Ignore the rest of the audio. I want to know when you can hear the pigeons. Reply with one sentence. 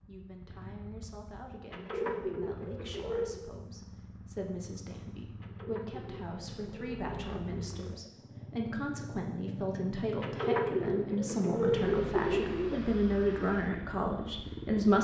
The pigeons can be heard from 1.7 to 3.5 s, from 5.4 to 8.2 s and from 10.2 to 12.8 s.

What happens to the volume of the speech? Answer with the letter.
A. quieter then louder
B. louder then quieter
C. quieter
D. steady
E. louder
E.